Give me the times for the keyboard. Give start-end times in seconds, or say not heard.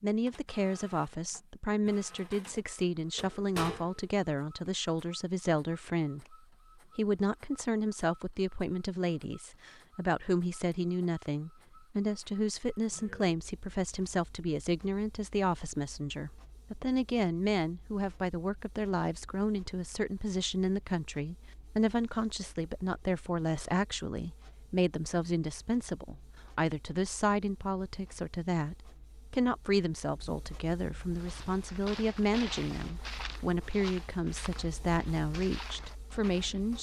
not heard.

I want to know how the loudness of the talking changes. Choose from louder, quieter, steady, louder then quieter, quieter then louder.
steady.